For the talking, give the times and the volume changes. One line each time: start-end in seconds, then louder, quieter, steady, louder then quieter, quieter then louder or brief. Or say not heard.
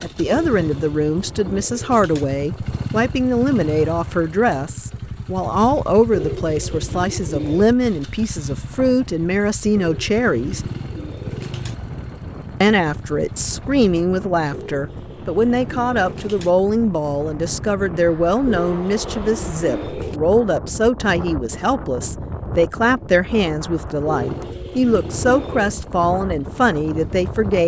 0.0-10.7 steady
12.6-27.6 steady.